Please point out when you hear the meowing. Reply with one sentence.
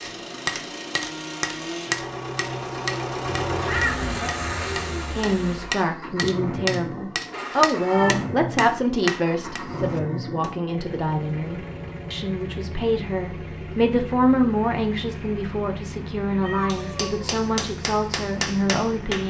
You can hear the meowing from 3.5 to 4.8 s, from 7.3 to 8.2 s and from 16.4 to 17.3 s.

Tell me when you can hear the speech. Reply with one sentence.
The speech can be heard from 5.1 to 19.2 s.